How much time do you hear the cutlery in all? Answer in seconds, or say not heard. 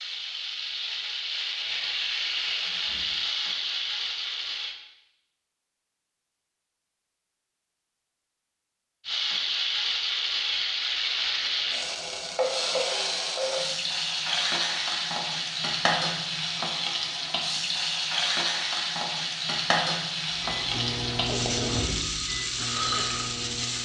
not heard.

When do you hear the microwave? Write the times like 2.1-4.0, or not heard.
20.4-23.8.